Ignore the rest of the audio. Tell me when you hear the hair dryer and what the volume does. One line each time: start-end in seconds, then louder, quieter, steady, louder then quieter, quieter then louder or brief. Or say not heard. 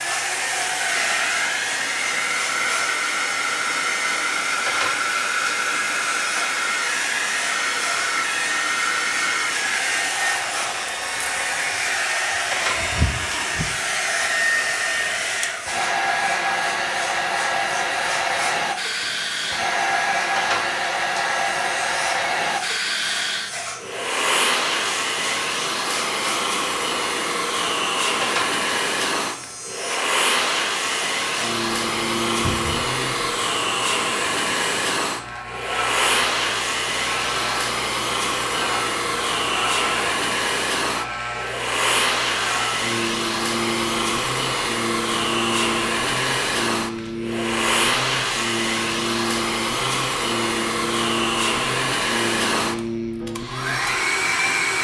0.0-54.7 steady.